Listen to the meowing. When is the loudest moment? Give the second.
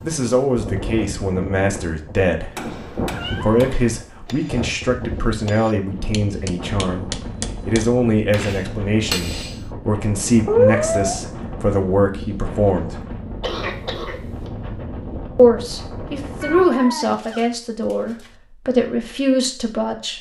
11 s.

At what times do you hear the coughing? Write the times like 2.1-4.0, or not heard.
13.4-14.5.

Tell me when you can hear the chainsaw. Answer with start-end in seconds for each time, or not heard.
not heard.